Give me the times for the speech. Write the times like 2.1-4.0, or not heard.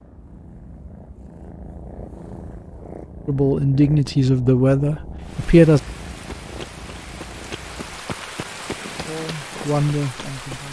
3.2-5.8, 9.1-10.6.